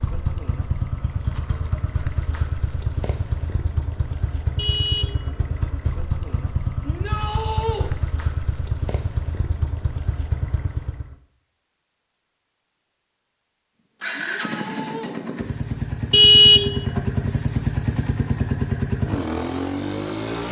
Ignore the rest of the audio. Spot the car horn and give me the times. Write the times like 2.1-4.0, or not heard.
4.5-6.0, 16.1-17.0.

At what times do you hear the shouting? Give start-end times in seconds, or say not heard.
6.8-7.9, 14.1-15.2.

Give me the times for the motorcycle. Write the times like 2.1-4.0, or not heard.
0.0-11.2, 14.0-20.4.